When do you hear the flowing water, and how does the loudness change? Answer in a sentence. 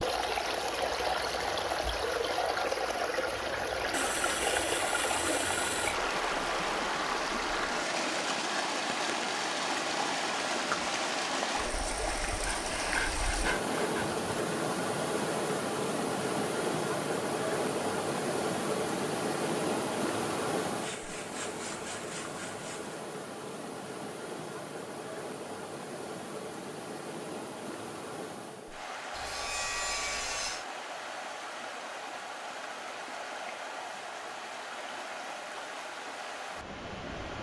You can hear the flowing water from 0.0 to 37.3 s, getting quieter.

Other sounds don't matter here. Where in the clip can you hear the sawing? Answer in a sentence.
You can hear the sawing from 3.9 to 6.0 s, from 12.4 to 14.3 s, from 20.6 to 23.0 s and from 29.1 to 30.6 s.